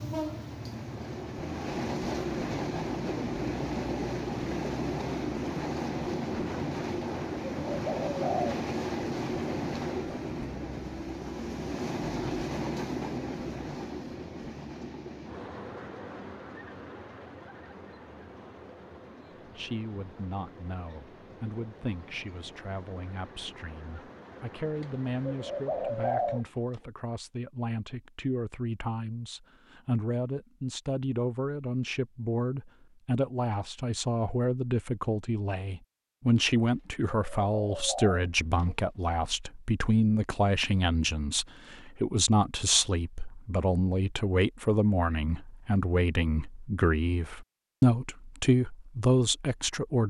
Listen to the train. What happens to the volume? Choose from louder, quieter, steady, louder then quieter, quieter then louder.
quieter.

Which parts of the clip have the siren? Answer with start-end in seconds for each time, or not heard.
not heard.